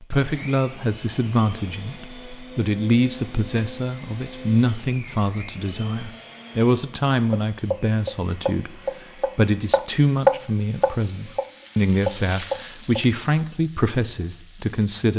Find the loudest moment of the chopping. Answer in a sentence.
The volume of the chopping peaks at 10 seconds.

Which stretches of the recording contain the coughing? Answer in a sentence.
You can't hear the coughing here.